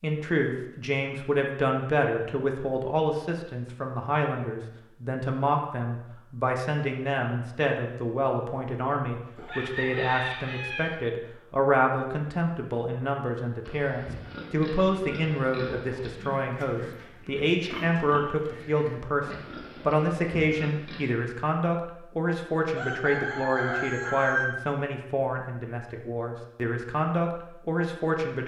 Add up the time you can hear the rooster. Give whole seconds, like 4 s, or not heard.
3 s.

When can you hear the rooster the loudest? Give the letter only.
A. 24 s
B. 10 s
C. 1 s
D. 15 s
A.